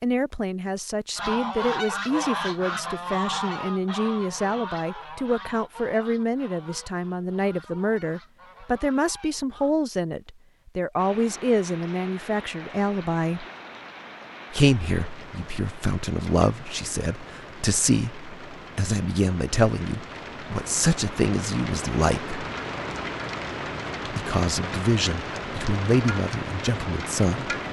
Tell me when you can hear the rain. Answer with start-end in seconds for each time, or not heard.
10.9-27.6.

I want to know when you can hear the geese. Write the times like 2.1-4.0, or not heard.
1.1-9.8.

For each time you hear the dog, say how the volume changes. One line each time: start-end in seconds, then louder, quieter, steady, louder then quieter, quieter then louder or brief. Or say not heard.
not heard.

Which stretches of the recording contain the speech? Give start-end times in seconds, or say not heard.
0.0-13.4, 14.5-22.4, 24.1-27.6.